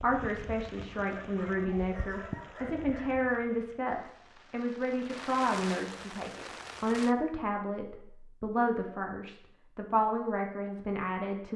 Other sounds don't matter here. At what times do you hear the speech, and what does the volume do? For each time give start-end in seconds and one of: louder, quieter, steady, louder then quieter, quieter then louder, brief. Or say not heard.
0.0-11.5 steady.